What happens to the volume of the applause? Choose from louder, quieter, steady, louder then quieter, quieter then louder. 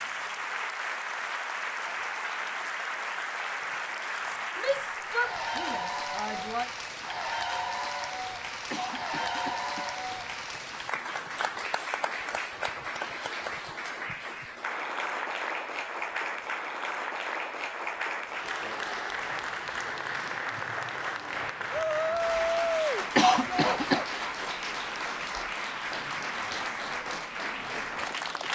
steady.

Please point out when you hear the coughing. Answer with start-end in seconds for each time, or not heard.
8.7-11.3, 23.1-24.1.